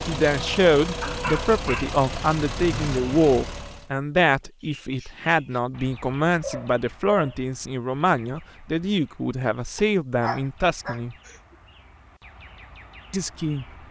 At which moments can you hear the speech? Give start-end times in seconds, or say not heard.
0.1-11.2, 13.1-13.7.